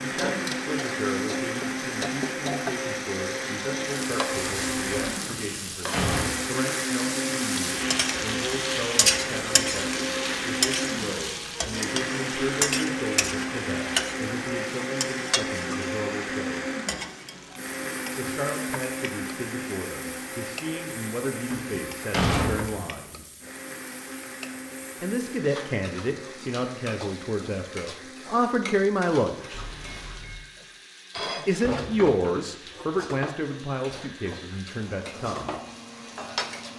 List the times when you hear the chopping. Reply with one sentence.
You can't hear the chopping here.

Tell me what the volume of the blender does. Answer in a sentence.
The volume of the blender goes down.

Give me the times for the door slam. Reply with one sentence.
The door slam can be heard from 5.2 to 6.3 s and from 21.5 to 22.9 s.